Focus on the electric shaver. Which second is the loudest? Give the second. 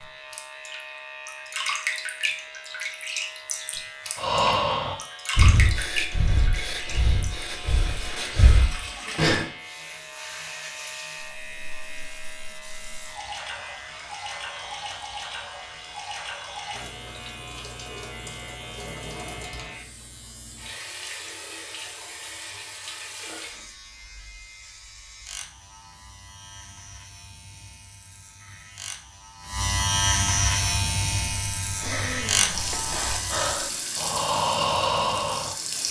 30 s.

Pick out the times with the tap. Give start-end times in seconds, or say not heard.
0.0-23.6, 32.4-35.8.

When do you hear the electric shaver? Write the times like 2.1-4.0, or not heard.
0.0-33.5.